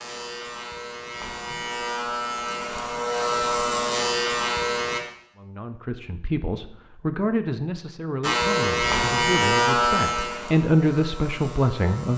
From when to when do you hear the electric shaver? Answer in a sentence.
You can hear the electric shaver from 0.0 to 5.0 s and from 8.2 to 12.1 s.